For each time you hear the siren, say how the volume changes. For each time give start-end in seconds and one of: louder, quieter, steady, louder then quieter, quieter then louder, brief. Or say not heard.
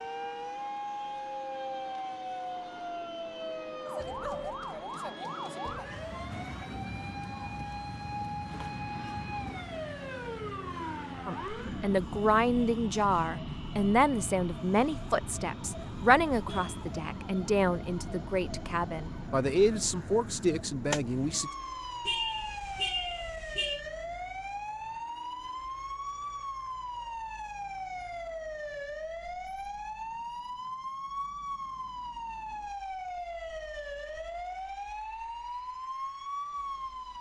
0.0-37.1 steady.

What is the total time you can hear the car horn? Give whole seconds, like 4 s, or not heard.
2 s.